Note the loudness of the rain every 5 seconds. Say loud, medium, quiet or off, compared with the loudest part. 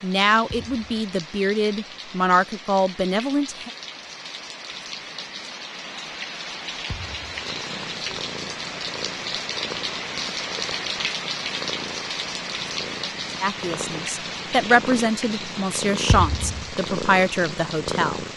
medium, loud, loud, medium.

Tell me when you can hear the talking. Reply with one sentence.
You can hear the talking from 0.0 to 3.7 s and from 13.4 to 18.2 s.